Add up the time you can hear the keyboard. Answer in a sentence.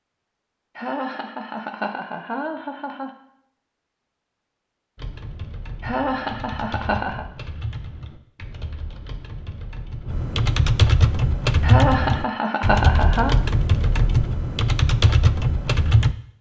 The keyboard can be heard for 11 seconds in total.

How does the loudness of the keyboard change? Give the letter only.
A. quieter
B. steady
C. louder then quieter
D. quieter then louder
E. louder
E.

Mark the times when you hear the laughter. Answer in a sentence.
You can hear the laughter from 0.8 to 3.1 s, from 5.8 to 7.2 s and from 11.6 to 13.3 s.